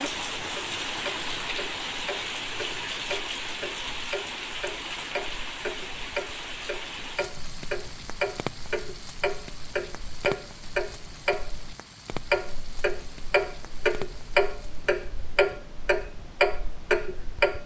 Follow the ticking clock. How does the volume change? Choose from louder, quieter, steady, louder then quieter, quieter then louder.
louder.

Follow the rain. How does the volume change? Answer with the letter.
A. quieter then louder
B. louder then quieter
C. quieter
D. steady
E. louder
C.